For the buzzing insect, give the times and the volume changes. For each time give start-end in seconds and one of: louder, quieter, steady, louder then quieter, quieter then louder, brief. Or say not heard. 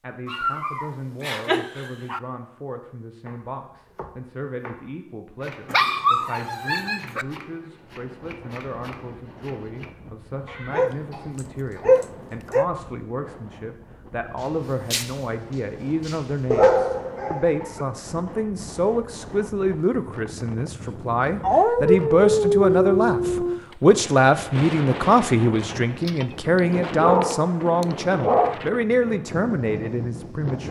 not heard.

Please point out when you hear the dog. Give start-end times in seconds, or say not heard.
0.2-2.2, 5.7-7.2, 10.7-12.7, 16.5-17.9, 21.4-23.6, 26.1-28.6.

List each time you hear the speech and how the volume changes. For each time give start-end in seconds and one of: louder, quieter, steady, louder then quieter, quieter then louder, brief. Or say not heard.
0.0-30.6 louder.